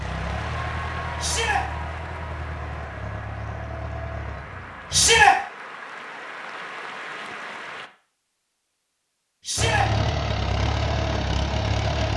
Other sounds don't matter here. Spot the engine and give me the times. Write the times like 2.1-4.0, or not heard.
0.0-5.2, 9.6-12.1.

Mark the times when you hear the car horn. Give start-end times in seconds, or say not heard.
not heard.